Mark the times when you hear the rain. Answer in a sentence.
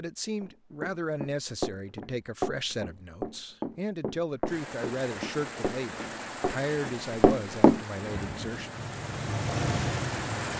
You can hear the rain from 4.5 to 10.5 s.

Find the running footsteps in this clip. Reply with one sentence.
The running footsteps can be heard from 0.4 to 7.8 s.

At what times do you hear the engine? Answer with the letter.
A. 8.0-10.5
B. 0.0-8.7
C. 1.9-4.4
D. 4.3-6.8
A.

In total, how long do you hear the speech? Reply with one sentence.
You can hear the speech for 9 seconds altogether.